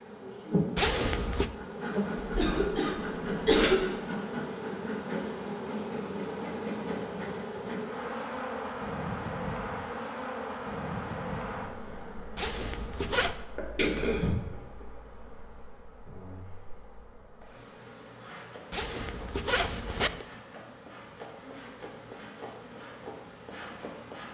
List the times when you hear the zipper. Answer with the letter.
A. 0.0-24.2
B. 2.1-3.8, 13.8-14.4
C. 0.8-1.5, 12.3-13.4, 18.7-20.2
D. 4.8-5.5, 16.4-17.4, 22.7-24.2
C.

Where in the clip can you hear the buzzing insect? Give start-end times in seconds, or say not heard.
0.0-24.2.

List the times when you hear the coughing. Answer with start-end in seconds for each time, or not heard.
2.1-3.8, 13.8-14.4.